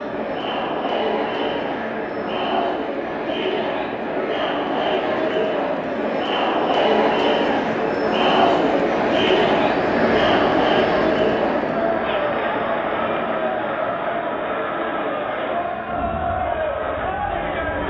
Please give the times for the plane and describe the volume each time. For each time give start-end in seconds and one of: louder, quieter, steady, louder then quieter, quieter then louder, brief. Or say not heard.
0.0-17.8 louder then quieter.